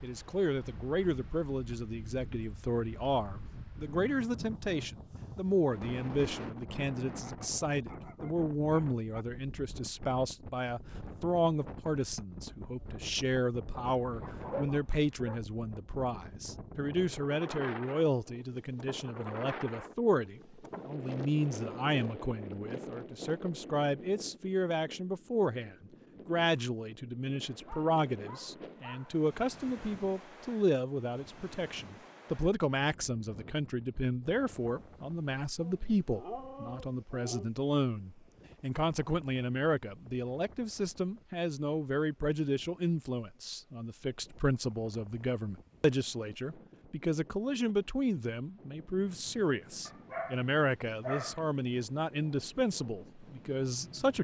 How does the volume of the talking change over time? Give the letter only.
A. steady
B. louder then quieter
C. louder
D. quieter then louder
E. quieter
A.